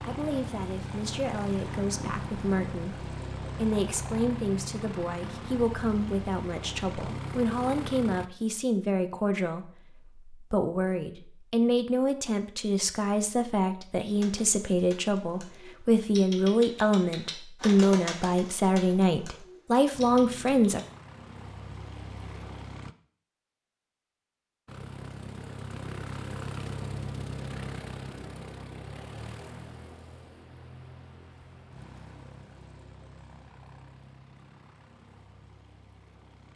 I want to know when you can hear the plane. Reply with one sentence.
You can hear the plane from 0.0 to 8.3 s, from 19.9 to 22.9 s and from 24.6 to 36.5 s.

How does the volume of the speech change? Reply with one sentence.
The loudness of the speech goes up.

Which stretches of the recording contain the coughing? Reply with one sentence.
The coughing can't be heard in this clip.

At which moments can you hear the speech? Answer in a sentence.
You can hear the speech from 0.0 to 20.8 s.